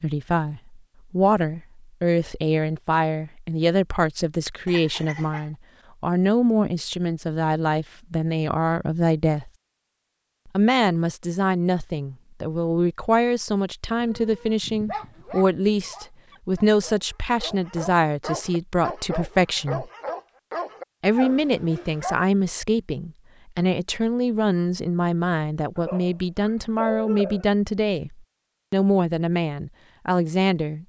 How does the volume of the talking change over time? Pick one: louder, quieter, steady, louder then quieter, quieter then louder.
steady.